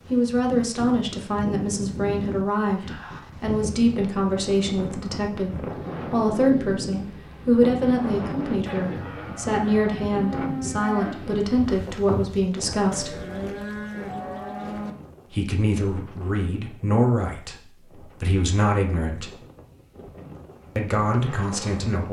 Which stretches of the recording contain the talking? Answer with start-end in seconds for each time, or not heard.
0.1-13.2, 15.2-19.4, 20.8-22.0.